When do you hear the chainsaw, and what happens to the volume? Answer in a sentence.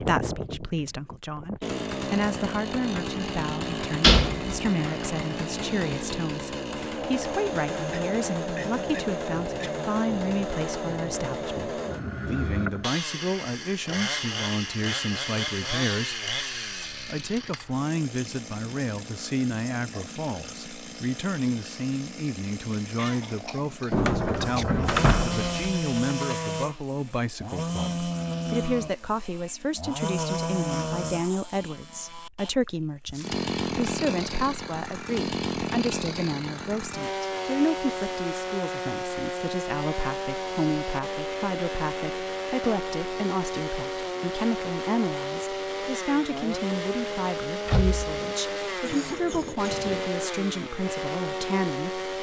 The chainsaw can be heard from 0.0 to 52.1 s, at a steady volume.